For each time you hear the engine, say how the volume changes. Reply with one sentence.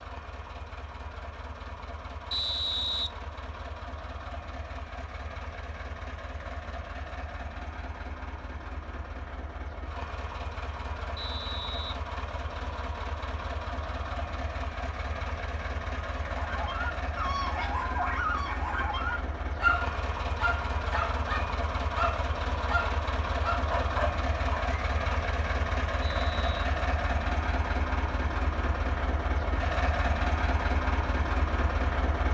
You can hear the engine from 0.0 to 32.2 s, getting louder.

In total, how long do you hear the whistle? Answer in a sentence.
You can hear the whistle for 3 seconds altogether.